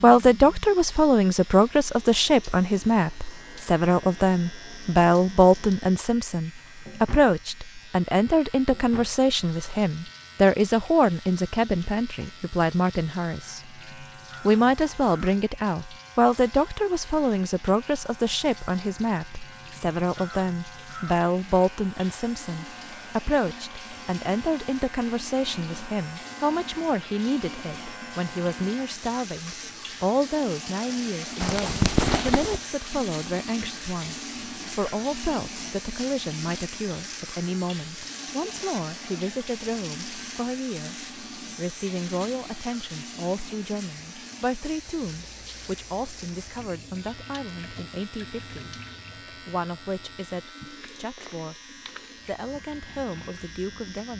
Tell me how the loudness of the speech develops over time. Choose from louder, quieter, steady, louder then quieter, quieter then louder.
quieter.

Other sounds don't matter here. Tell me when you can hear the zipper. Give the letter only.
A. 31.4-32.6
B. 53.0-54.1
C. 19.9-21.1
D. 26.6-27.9
A.